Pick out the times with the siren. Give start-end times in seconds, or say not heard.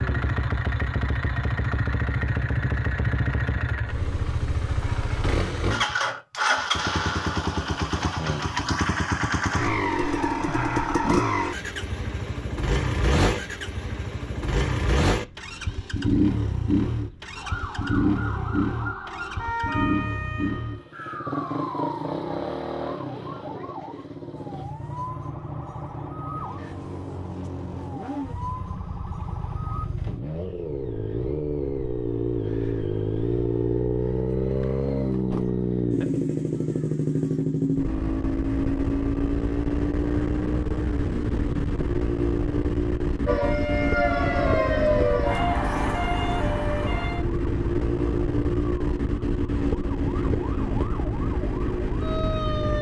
17.4-29.9, 43.2-52.7.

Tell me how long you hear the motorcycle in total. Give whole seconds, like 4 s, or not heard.
53 s.